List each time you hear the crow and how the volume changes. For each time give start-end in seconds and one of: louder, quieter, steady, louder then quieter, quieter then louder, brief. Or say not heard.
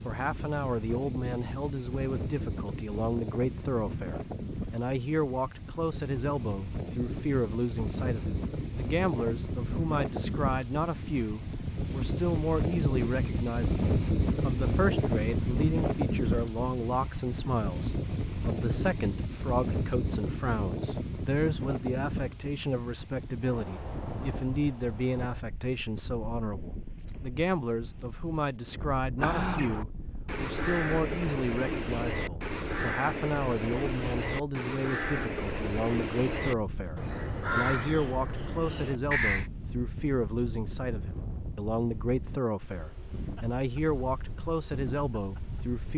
29.1-39.5 steady.